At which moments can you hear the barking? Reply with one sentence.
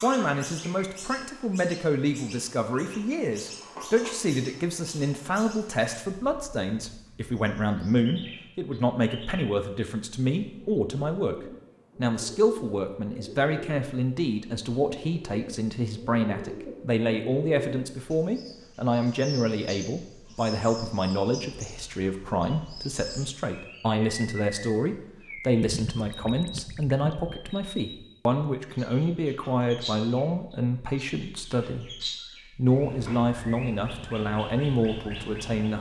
You can't hear the barking here.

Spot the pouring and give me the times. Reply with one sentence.
The pouring can be heard from 25.6 to 27.6 s.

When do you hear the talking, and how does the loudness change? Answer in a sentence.
The talking can be heard from 0.0 to 11.3 s, at a steady volume; and from 11.9 to 35.7 s, at a steady volume.